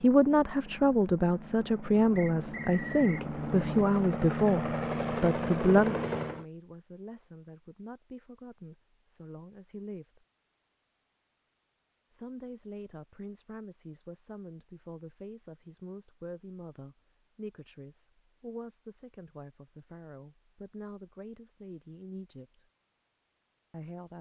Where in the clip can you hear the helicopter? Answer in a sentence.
The helicopter can be heard from 0.0 to 6.5 s.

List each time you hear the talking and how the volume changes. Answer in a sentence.
The talking can be heard from 0.0 to 10.2 s, getting quieter; from 12.1 to 22.6 s, at a steady volume; and briefly from 23.7 to 24.1 s.